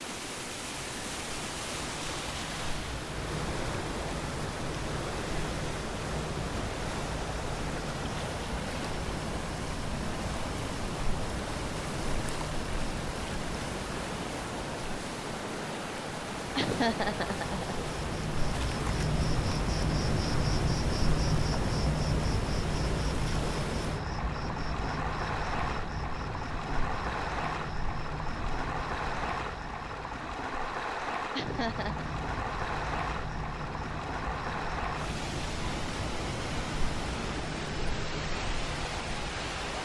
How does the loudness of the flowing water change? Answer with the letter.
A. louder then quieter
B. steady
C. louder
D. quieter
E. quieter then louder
B.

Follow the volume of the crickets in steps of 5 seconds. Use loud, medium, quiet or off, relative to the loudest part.
medium, medium, medium, loud, loud, medium, medium, medium.